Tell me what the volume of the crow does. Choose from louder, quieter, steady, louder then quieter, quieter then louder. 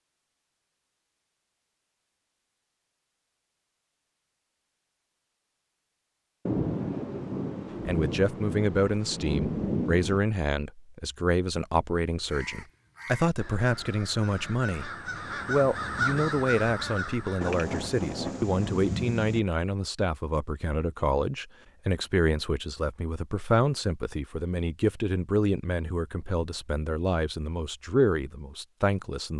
louder.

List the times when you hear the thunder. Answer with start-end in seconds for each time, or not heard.
6.5-10.2, 17.4-19.4.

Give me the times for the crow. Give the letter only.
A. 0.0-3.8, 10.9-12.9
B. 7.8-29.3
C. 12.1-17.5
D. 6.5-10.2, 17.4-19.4
C.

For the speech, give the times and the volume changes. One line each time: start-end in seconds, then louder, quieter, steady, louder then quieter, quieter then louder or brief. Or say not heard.
7.8-29.3 steady.